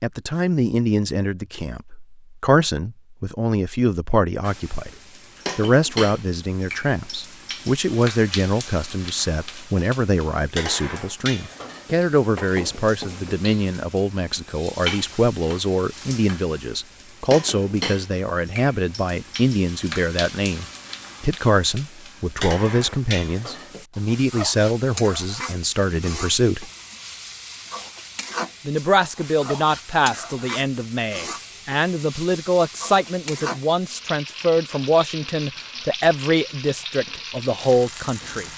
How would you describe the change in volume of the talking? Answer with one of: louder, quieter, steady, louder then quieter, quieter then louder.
steady.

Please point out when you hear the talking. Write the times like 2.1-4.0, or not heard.
0.0-4.9, 5.5-26.7, 28.6-38.5.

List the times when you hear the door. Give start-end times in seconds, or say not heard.
not heard.